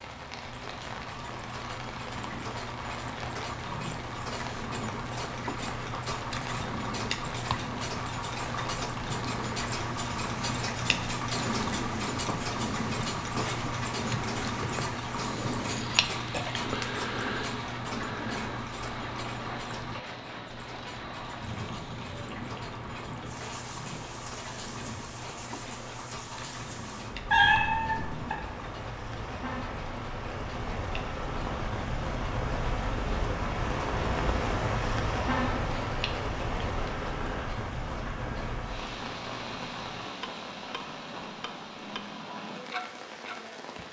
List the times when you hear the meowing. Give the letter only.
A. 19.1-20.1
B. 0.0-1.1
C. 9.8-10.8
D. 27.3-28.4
D.